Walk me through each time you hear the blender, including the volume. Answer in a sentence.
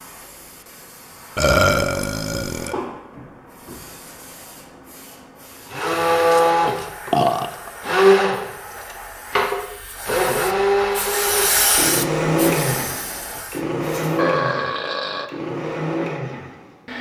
The blender can be heard from 5.7 to 16.9 s, getting quieter.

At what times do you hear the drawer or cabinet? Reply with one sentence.
The drawer or cabinet can't be heard in this clip.